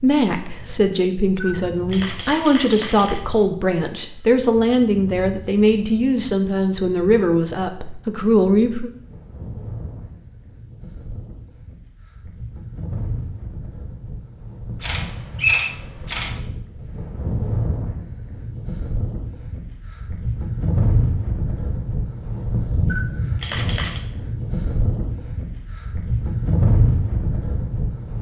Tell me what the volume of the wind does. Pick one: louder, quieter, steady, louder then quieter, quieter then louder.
louder.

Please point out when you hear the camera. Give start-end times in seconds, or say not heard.
1.4-3.2, 14.8-16.4, 22.9-24.0.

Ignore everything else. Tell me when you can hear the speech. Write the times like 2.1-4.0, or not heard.
0.0-8.9.